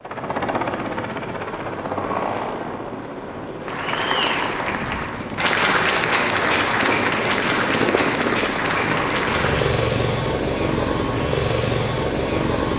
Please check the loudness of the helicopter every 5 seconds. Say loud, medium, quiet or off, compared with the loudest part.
medium, loud, loud.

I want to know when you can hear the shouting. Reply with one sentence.
The shouting can't be heard in this clip.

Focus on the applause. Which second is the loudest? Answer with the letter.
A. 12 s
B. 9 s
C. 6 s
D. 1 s
C.